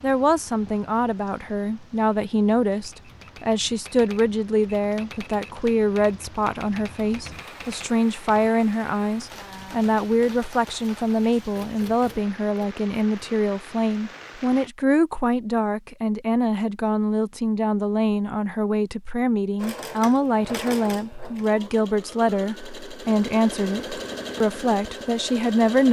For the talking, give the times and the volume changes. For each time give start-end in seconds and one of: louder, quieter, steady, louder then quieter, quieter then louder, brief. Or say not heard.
0.0-25.8 steady.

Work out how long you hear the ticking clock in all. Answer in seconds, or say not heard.
not heard.